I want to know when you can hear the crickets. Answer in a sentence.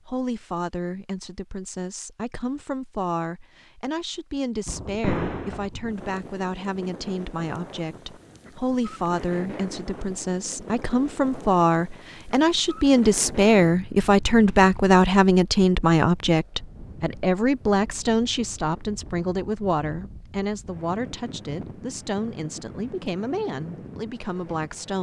The crickets can't be heard in this clip.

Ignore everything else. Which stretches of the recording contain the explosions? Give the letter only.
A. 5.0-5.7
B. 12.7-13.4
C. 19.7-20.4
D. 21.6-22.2
A.